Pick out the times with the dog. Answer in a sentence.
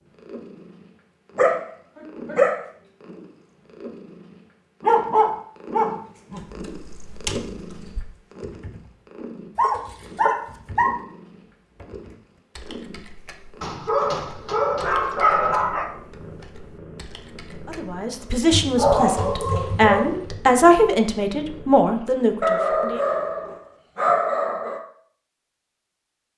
You can hear the dog from 1.4 to 2.6 s, from 4.8 to 6.5 s, from 9.6 to 10.9 s, from 13.6 to 15.9 s, from 18.5 to 20.4 s and from 22.4 to 24.8 s.